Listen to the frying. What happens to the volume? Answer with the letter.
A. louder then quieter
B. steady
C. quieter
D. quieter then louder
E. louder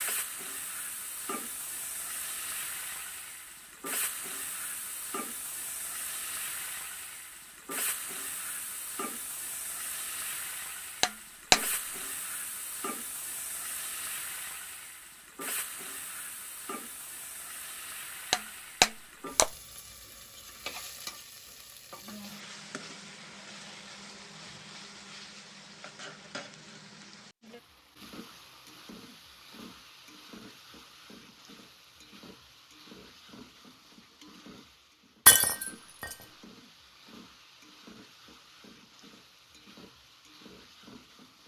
C.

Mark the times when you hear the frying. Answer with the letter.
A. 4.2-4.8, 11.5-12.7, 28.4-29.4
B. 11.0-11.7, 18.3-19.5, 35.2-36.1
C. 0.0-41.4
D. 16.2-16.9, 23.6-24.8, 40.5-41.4
C.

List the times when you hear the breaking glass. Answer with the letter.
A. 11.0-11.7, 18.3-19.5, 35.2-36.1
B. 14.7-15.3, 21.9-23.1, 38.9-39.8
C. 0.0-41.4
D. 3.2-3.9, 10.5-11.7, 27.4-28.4
A.